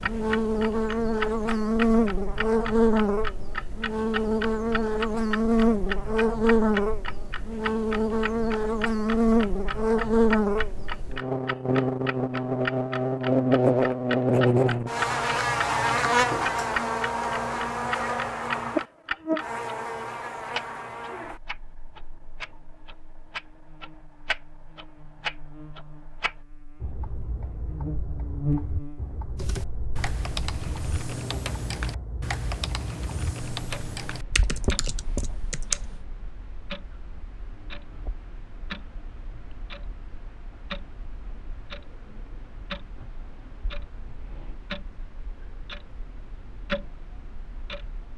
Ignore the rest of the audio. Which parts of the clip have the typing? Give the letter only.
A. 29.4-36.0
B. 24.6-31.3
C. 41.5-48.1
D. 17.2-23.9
A.